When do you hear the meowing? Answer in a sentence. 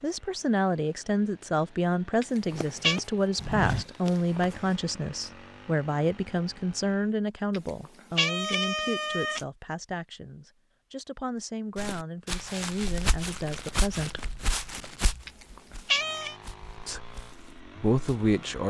You can hear the meowing from 2.2 to 3.0 s, from 7.5 to 9.4 s and from 15.2 to 16.4 s.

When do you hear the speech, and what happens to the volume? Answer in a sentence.
You can hear the speech from 0.0 to 14.2 s, getting quieter; and briefly from 16.8 to 18.6 s.